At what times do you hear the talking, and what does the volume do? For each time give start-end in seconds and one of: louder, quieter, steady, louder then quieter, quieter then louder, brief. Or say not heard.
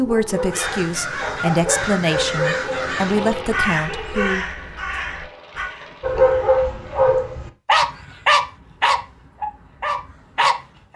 0.0-4.5 louder then quieter.